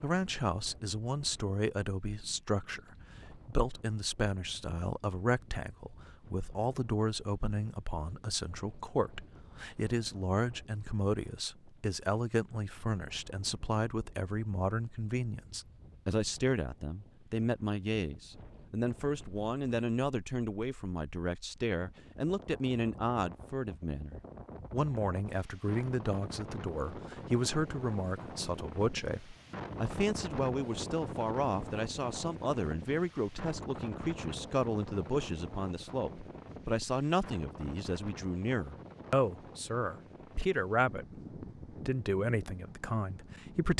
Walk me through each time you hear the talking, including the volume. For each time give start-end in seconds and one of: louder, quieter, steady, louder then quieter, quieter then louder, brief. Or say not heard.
0.0-43.7 steady.